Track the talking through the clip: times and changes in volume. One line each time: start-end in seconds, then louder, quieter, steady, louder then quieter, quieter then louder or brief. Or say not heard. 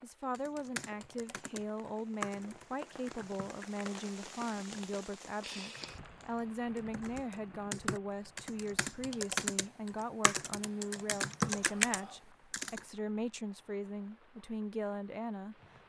0.0-15.6 steady.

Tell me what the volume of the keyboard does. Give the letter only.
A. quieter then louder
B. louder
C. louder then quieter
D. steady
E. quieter
A.